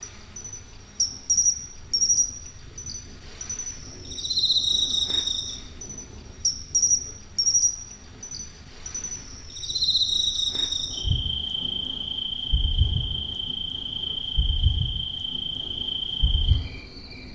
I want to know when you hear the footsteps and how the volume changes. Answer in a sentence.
You can't hear the footsteps here.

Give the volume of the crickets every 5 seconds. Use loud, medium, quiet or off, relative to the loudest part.
loud, loud, loud, medium.